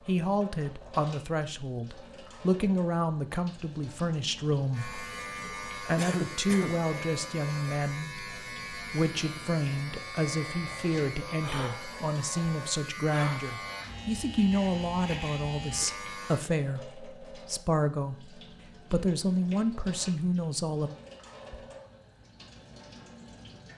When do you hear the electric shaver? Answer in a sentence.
You can hear the electric shaver from 4.7 to 16.4 s.